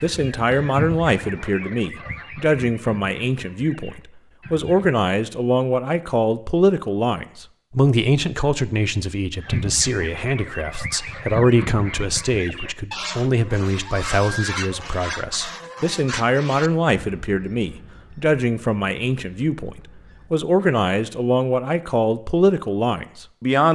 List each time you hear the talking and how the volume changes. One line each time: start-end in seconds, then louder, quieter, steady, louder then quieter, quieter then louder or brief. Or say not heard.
0.0-23.7 steady.